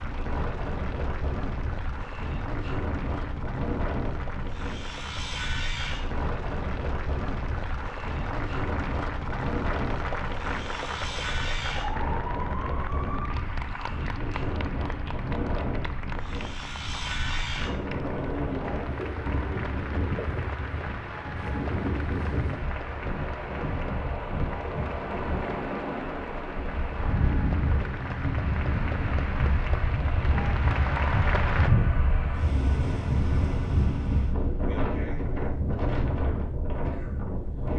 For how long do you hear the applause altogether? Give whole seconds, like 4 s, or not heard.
32 s.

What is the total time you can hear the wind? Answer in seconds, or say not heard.
38 s.